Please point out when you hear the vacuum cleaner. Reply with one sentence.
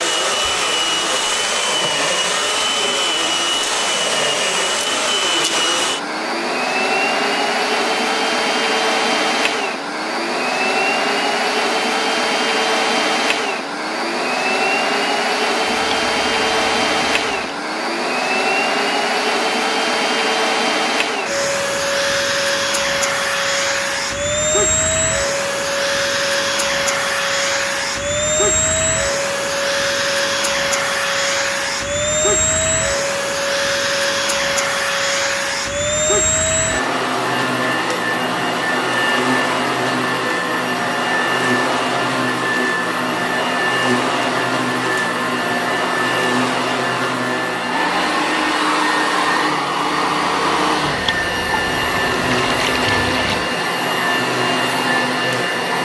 The vacuum cleaner can be heard from 0.0 to 55.8 s.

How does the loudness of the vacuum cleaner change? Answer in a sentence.
The volume of the vacuum cleaner stays about the same.